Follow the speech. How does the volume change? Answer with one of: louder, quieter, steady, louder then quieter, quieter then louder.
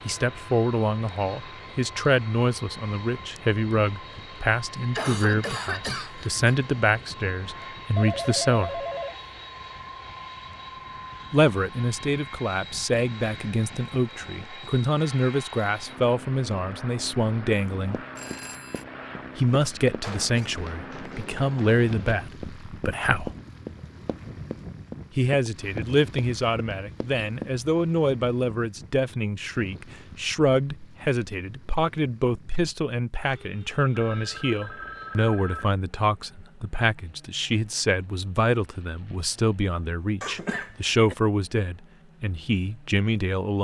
steady.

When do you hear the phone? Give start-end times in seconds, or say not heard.
8.0-9.2, 18.1-18.9, 33.9-35.6.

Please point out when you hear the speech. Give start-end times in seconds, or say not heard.
0.1-8.8, 11.3-18.0, 19.4-23.4, 25.1-43.5.